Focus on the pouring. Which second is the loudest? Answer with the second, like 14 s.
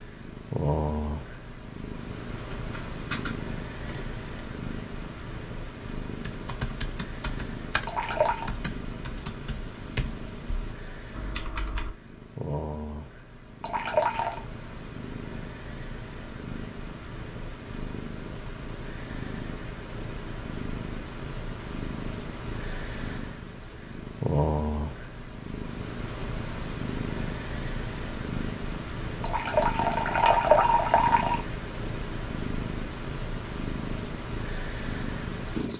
30 s.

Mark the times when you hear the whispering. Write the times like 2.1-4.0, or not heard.
not heard.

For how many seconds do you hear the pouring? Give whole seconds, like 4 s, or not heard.
4 s.